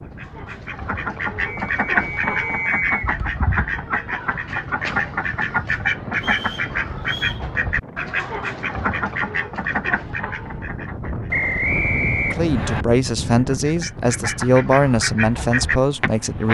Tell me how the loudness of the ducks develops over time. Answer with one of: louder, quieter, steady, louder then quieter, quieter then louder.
steady.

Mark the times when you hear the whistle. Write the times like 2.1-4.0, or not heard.
1.4-3.1, 6.2-7.5, 11.3-12.8.